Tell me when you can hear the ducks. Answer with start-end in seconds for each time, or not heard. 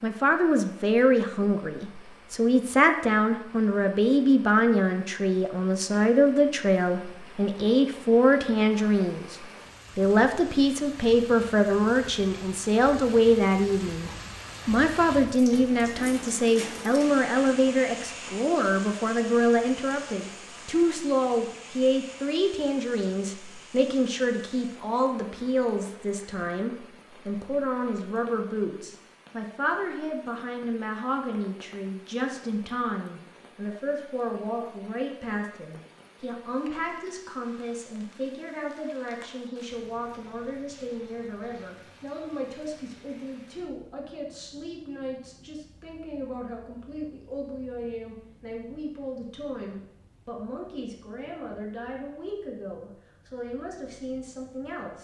not heard.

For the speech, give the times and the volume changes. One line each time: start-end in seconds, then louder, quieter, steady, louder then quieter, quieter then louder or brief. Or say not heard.
0.0-54.9 quieter.